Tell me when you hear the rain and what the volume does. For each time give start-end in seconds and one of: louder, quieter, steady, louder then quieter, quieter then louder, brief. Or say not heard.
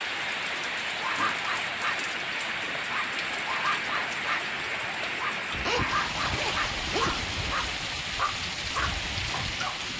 0.0-9.9 steady.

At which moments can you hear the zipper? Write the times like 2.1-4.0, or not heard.
5.5-7.3.